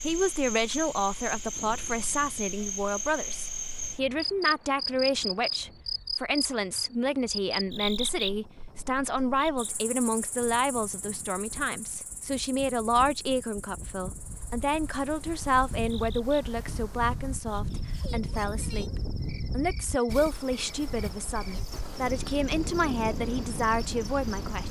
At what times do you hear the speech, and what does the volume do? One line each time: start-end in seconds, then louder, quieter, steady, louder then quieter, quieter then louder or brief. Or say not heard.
0.0-24.6 steady.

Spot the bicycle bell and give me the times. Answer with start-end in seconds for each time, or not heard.
not heard.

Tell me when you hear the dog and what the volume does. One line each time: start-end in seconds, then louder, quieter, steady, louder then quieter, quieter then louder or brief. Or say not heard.
not heard.